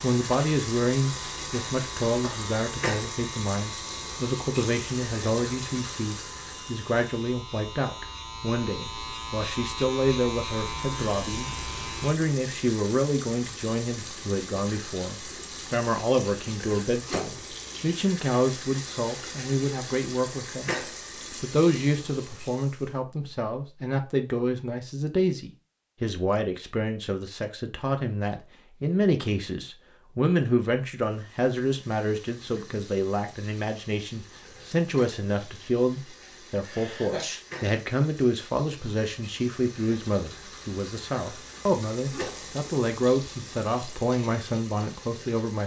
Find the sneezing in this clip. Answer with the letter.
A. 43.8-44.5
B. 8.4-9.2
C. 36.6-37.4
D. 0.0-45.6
C.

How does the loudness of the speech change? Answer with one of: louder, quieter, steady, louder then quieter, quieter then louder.
steady.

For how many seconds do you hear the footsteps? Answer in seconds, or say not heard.
not heard.